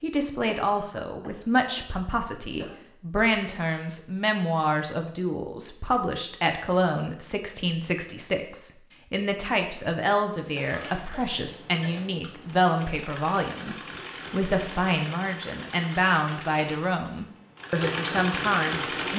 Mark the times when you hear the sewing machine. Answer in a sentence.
You can hear the sewing machine from 10.6 to 19.1 s.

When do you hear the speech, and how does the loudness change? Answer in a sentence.
You can hear the speech from 0.0 to 19.1 s, at a steady volume.